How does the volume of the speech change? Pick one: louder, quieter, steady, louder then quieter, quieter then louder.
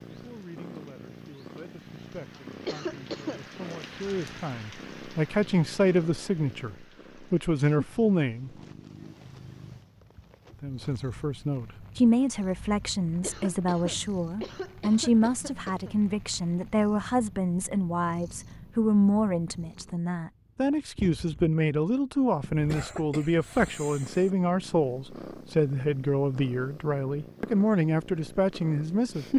louder.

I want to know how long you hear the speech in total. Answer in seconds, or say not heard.
27 s.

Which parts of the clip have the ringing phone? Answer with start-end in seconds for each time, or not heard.
not heard.